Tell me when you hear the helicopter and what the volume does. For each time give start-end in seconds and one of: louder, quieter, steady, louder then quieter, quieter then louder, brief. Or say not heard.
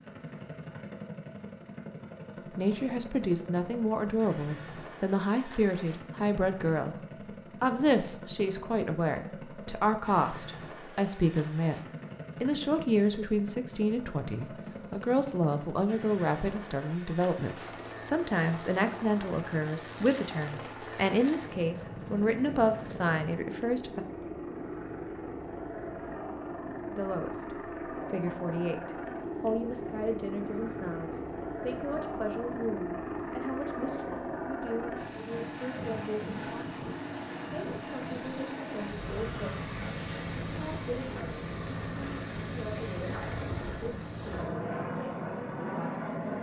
0.0-46.3 louder.